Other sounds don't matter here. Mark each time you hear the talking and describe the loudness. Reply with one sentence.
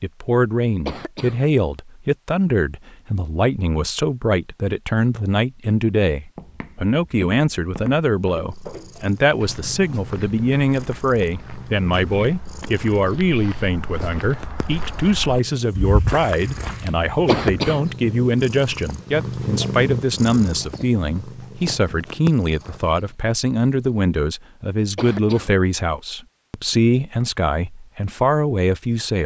The talking can be heard from 0.0 to 29.2 s, at a steady volume.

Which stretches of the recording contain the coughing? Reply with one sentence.
The coughing can be heard from 0.8 to 1.4 s, from 17.2 to 17.9 s and from 24.9 to 25.6 s.